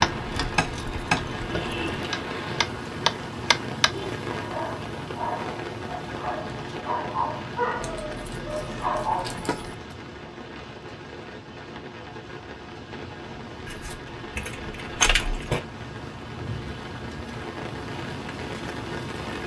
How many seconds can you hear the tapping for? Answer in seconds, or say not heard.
4 s.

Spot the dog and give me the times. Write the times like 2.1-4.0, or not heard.
4.2-9.7.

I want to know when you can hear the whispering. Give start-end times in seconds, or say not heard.
not heard.